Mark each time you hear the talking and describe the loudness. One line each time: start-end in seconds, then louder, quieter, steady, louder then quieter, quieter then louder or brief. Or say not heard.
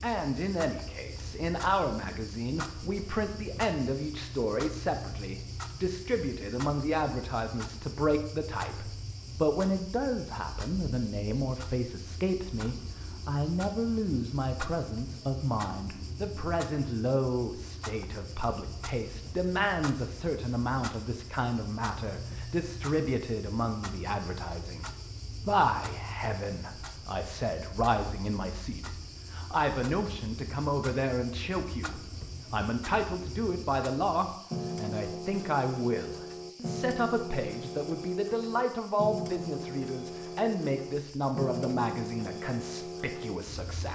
0.0-43.9 steady.